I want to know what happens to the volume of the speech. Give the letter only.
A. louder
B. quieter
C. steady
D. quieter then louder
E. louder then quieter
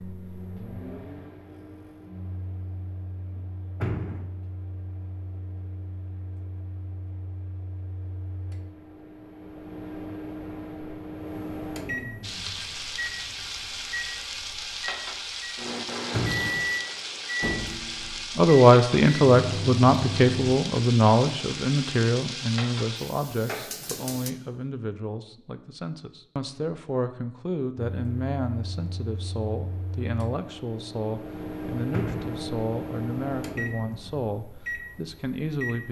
B.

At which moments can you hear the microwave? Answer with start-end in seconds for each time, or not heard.
0.0-20.6, 27.9-35.8.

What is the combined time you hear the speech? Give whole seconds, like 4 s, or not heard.
18 s.